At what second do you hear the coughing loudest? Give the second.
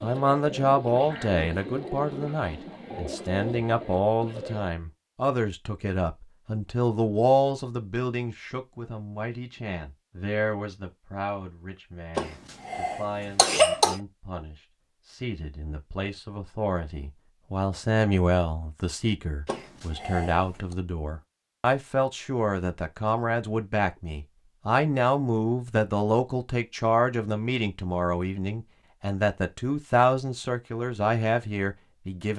14 s.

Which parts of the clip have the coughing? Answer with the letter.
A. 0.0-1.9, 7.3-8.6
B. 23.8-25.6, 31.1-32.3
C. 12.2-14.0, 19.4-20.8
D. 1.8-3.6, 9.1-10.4
C.